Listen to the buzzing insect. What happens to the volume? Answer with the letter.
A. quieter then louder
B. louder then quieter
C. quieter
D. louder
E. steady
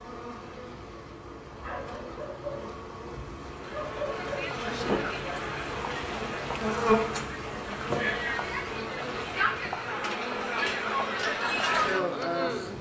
B.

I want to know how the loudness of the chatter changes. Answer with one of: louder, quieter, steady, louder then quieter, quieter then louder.
louder.